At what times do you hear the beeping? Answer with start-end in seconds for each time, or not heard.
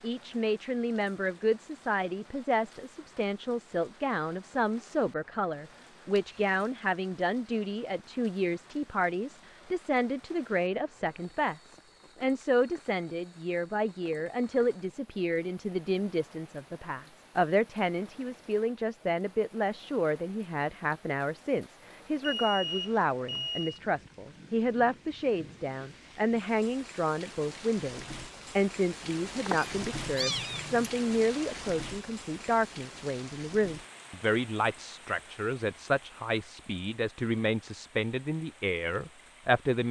6.1-6.7, 22.2-23.8.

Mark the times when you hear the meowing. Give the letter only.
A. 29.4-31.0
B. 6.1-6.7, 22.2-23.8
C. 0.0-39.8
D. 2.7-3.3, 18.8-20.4
A.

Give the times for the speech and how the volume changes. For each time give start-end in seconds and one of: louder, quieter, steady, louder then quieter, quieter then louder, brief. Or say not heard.
0.0-39.8 steady.